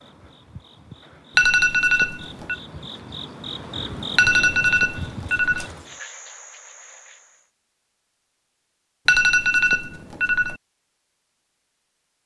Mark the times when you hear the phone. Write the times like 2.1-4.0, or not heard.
1.4-2.5, 4.2-5.7, 9.1-10.6.